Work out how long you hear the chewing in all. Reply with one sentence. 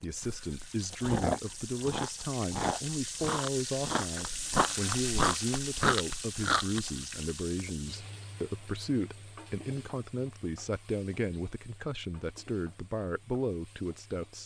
You can hear the chewing for 7 seconds altogether.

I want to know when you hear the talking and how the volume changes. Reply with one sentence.
You can hear the talking from 0.0 to 14.4 s, at a steady volume.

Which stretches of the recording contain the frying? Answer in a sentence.
The frying can be heard from 0.0 to 14.4 s.